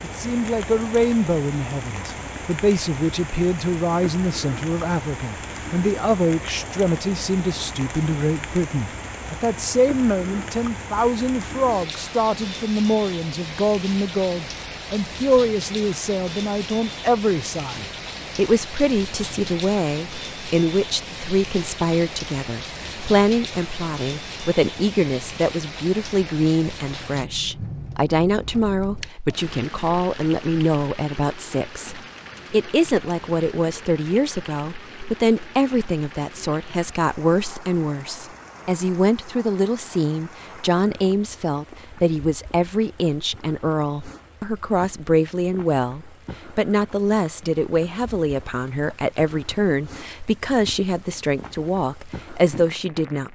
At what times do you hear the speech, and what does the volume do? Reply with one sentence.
The speech can be heard from 0.0 to 53.3 s, at a steady volume.